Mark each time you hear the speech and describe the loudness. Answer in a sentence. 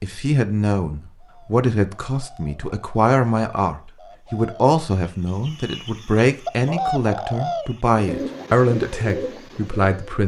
The speech can be heard from 0.0 to 10.2 s, at a steady volume.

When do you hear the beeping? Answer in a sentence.
The beeping can't be heard in this clip.